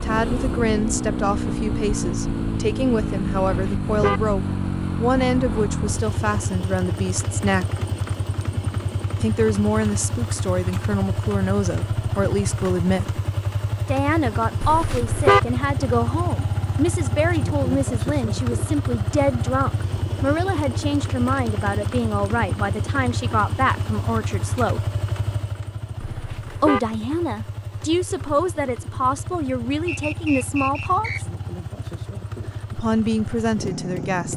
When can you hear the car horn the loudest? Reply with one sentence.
The loudest moment of the car horn is at 15 seconds.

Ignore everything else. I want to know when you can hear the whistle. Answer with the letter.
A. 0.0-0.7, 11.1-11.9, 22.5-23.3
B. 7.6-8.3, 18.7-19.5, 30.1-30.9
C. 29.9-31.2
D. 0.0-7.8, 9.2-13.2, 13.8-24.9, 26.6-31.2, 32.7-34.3
C.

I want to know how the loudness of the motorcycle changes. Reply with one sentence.
The loudness of the motorcycle goes down.